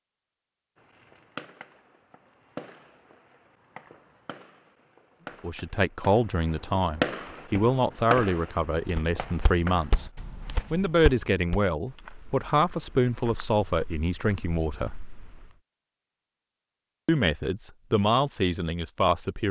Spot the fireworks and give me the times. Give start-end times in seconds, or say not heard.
0.8-10.1.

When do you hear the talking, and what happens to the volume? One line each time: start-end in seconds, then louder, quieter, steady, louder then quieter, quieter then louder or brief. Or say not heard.
5.4-14.9 steady
17.1-19.4 brief.